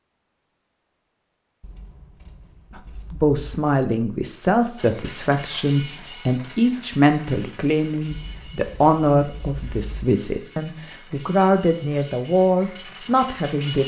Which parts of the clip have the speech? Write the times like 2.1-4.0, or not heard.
2.8-13.8.